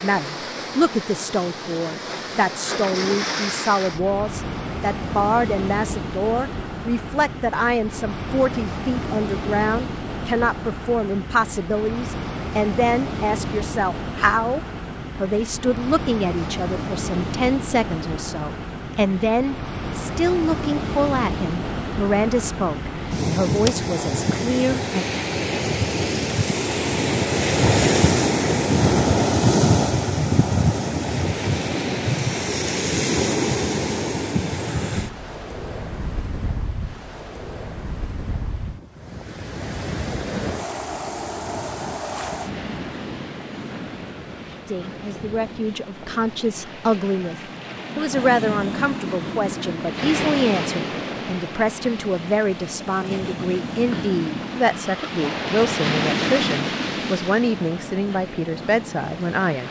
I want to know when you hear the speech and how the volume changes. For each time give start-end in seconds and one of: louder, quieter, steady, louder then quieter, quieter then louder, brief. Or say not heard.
0.0-25.1 steady
44.6-59.6 steady.